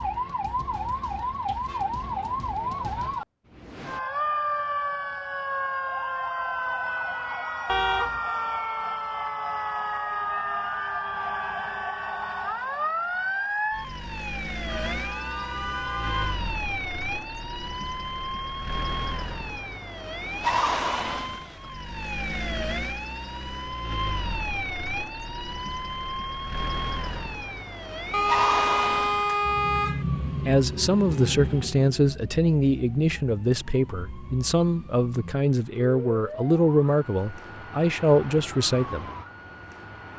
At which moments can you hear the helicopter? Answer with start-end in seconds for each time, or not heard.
not heard.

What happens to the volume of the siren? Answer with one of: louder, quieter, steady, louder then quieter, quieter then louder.
quieter.